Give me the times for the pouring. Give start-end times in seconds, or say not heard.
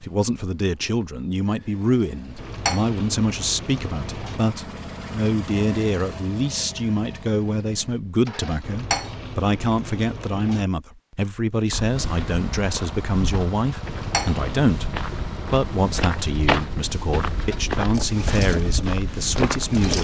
2.4-4.4, 8.6-10.7, 13.8-14.8.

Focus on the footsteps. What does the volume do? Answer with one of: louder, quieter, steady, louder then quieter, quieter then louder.
louder.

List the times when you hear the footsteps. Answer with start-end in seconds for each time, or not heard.
11.7-19.9.